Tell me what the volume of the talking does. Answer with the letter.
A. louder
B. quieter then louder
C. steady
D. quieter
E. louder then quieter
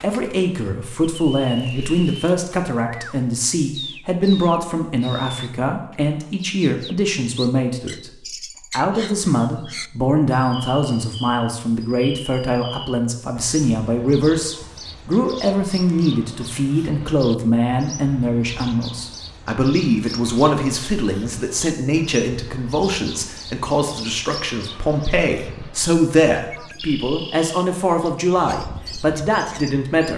C.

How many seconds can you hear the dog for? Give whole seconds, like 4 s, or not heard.
not heard.